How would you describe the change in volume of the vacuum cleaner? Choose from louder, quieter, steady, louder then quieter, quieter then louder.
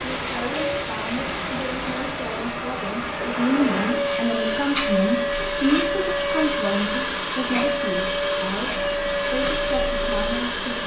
louder.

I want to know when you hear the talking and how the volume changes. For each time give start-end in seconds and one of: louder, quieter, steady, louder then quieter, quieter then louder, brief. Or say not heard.
0.0-10.8 louder then quieter.